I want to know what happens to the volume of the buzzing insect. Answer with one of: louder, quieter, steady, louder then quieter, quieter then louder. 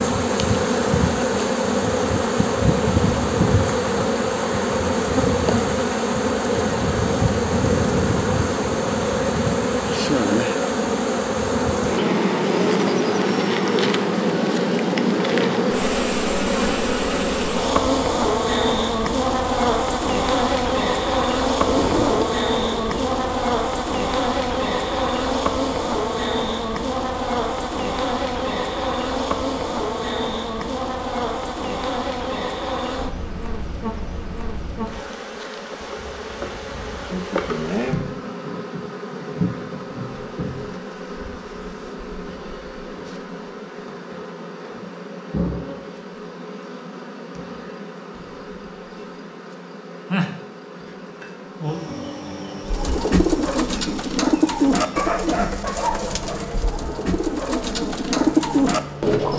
quieter.